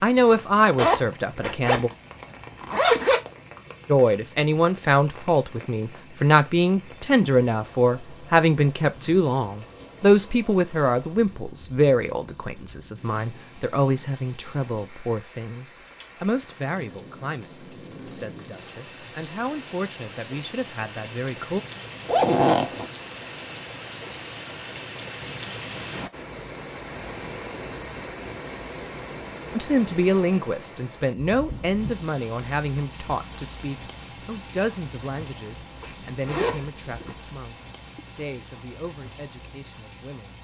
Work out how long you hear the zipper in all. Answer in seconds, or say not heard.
4 s.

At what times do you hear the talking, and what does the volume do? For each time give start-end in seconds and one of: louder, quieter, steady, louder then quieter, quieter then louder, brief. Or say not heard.
0.0-1.9 brief
3.9-21.6 quieter
29.6-40.3 quieter.